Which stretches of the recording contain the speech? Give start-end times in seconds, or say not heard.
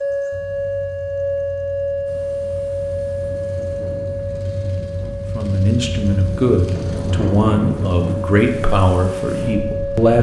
5.3-10.1.